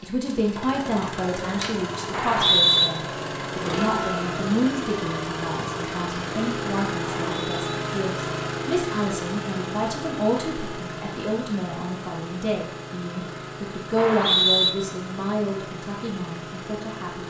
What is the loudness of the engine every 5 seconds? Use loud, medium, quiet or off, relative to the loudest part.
loud, loud, medium, medium.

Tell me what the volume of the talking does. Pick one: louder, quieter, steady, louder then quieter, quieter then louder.
steady.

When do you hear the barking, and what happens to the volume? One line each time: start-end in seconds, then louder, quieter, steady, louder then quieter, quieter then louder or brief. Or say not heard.
not heard.